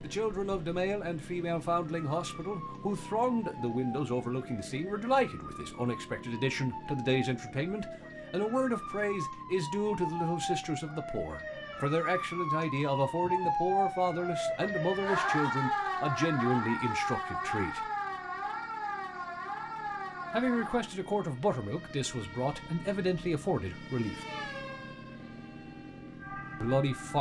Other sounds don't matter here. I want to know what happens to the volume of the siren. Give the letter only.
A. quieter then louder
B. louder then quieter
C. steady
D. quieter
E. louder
B.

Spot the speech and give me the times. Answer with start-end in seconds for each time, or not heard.
0.0-17.9, 20.3-24.2, 26.6-27.1.